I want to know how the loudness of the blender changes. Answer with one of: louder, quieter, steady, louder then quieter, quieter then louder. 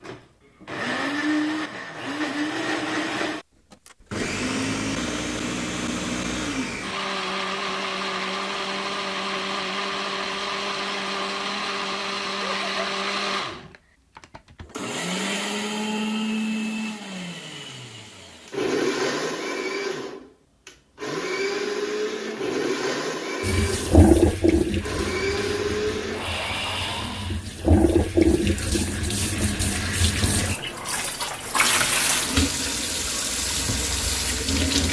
steady.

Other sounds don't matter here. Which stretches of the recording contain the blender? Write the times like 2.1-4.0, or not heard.
0.0-27.4.